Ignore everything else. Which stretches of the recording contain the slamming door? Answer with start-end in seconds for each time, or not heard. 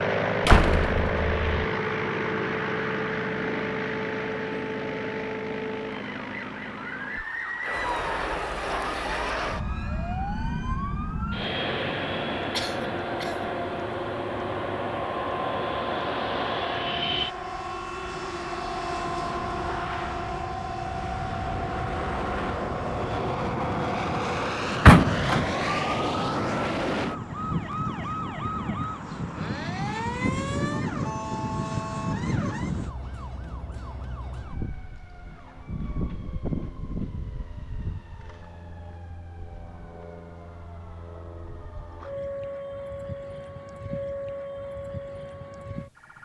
0.5-1.6, 24.9-25.5.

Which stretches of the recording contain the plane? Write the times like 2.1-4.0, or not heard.
0.0-33.0.